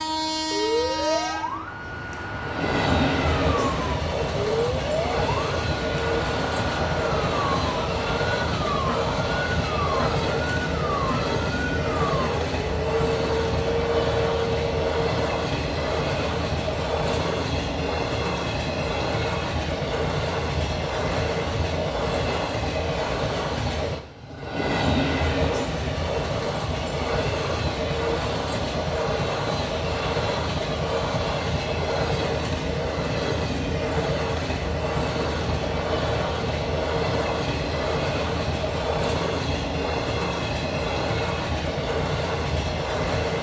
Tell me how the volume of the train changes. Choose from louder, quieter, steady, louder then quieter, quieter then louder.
steady.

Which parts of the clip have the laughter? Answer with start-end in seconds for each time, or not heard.
not heard.